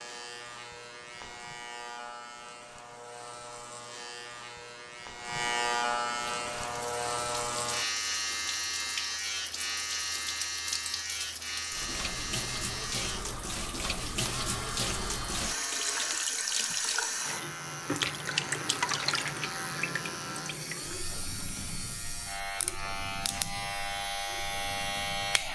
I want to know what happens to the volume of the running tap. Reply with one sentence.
The volume of the running tap goes up, then down.